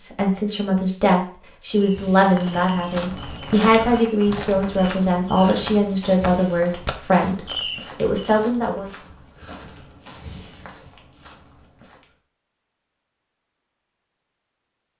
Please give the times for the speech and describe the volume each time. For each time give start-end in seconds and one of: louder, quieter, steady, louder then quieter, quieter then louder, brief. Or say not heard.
0.0-8.9 steady.